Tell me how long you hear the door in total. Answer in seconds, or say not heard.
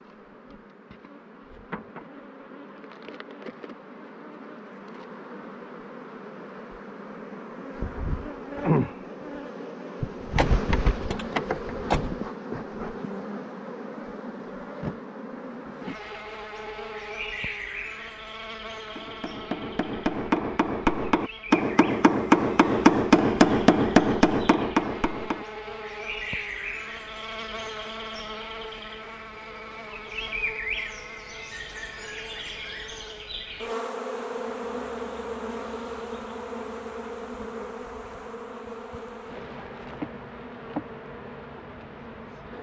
2 s.